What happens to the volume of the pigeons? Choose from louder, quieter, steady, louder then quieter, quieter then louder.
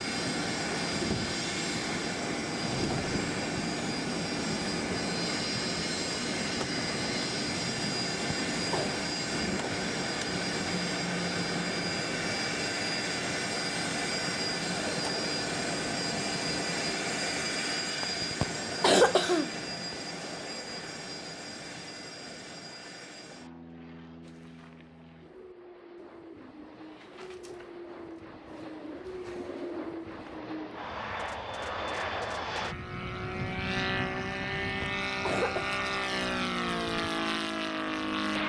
louder.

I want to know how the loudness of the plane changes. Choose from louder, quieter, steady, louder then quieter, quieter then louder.
quieter then louder.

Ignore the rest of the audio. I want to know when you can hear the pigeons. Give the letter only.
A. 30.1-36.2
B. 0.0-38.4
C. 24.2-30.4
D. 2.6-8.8
C.